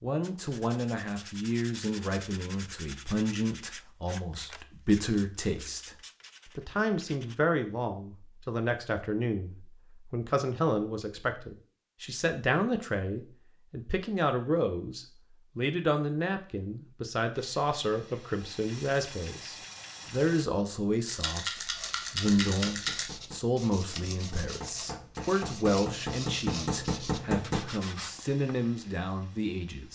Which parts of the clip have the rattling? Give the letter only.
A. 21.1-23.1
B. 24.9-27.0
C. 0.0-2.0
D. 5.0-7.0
A.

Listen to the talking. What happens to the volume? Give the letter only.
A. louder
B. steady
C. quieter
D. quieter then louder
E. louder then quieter
B.